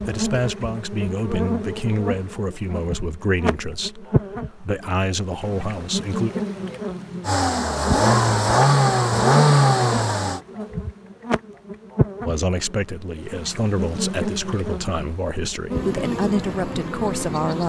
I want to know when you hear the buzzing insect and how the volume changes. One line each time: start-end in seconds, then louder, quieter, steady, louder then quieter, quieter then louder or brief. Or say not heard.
0.0-17.6 steady.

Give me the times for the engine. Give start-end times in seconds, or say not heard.
7.2-10.4.